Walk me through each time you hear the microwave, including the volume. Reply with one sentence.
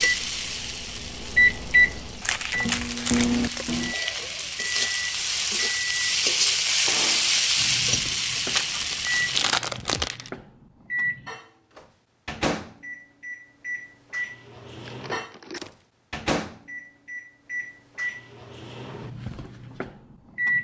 You can hear the microwave from 0.0 to 20.5 s, getting quieter.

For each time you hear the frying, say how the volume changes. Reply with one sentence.
You can hear the frying from 0.0 to 9.6 s, getting louder.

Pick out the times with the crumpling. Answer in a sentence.
You can hear the crumpling from 2.2 to 3.8 s, from 8.5 to 10.3 s and from 14.8 to 15.8 s.